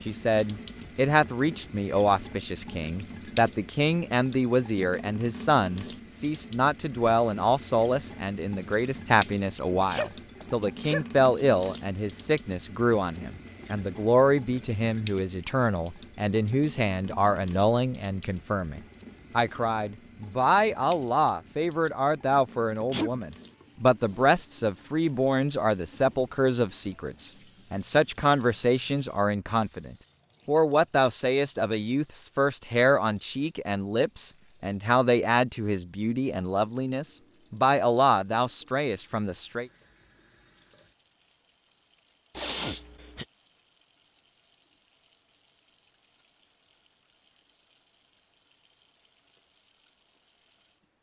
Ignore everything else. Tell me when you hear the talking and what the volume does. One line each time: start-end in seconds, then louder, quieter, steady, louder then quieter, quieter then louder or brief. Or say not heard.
0.1-39.6 steady.